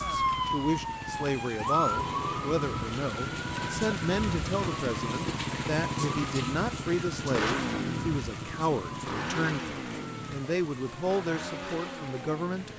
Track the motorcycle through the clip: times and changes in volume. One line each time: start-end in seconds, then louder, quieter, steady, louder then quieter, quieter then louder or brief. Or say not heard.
0.0-12.7 louder then quieter.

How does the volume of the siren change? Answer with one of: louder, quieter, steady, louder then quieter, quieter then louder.
quieter.